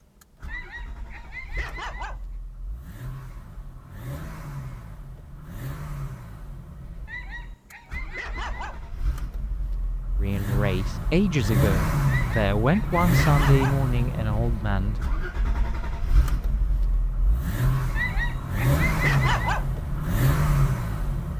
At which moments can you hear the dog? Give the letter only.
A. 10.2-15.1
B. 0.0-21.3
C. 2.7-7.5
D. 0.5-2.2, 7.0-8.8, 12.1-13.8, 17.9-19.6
D.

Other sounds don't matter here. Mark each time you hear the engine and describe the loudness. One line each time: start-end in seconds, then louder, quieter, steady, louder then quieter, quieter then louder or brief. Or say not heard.
0.0-21.3 louder.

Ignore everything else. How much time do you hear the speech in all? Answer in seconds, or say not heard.
5 s.